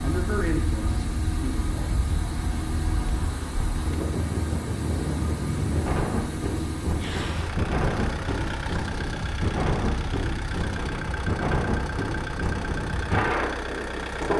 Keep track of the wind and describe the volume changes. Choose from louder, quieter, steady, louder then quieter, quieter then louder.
louder.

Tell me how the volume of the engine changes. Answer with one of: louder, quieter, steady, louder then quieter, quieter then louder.
steady.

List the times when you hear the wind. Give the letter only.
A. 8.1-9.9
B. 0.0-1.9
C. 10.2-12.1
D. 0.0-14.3
D.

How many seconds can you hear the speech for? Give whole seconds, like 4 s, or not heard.
2 s.